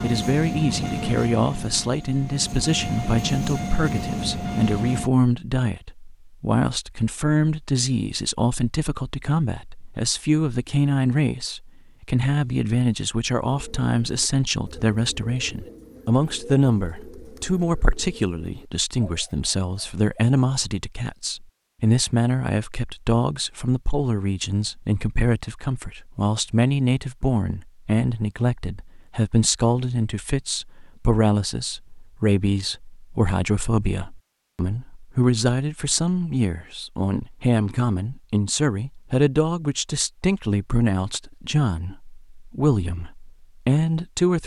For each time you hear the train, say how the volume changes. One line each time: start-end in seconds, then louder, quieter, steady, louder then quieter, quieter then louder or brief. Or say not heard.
0.0-5.1 quieter then louder.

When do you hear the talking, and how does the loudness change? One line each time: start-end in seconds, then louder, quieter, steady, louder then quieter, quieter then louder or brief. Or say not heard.
0.0-44.4 steady.